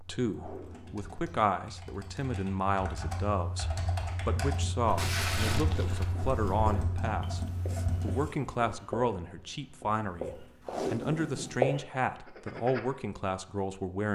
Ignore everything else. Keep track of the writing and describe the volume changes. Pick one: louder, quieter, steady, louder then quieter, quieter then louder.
louder.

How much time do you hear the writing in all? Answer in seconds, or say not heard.
8 s.